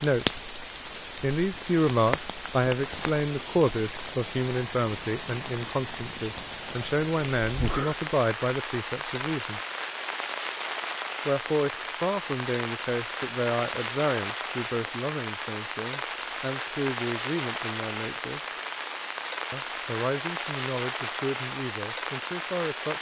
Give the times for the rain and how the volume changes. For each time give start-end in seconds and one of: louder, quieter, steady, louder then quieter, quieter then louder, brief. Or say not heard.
0.0-22.9 steady.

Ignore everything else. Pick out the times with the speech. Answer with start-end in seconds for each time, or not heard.
0.0-0.4, 1.2-9.6, 11.2-18.5, 19.5-22.9.